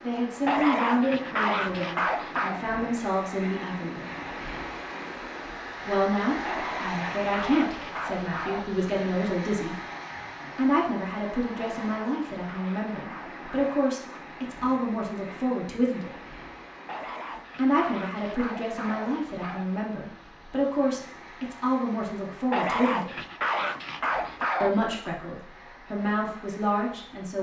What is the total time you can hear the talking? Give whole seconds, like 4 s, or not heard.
22 s.